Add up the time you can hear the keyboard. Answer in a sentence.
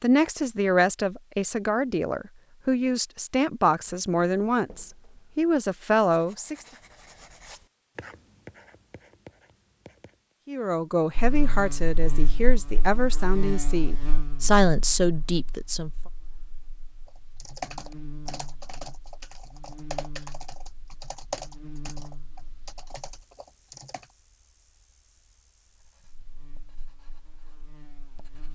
The keyboard can be heard for 7 seconds in total.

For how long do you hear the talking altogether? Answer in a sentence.
You can hear the talking for 12 seconds altogether.